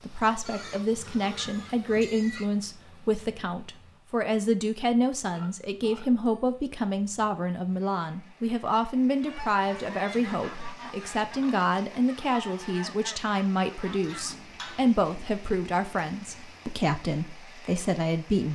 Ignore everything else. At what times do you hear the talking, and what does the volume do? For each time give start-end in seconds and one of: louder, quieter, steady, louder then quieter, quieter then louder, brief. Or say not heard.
0.0-18.5 steady.